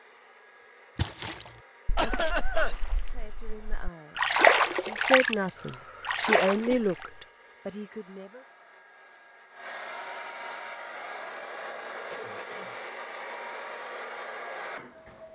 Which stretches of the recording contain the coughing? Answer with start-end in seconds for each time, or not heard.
1.9-2.8, 5.5-7.2, 12.1-12.8.